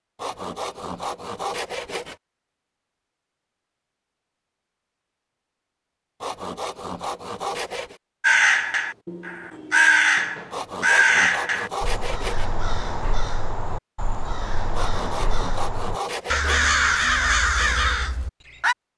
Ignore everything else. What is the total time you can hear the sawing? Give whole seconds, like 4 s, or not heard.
8 s.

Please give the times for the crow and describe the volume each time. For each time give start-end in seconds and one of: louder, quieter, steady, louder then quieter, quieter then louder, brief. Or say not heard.
8.2-18.8 quieter then louder.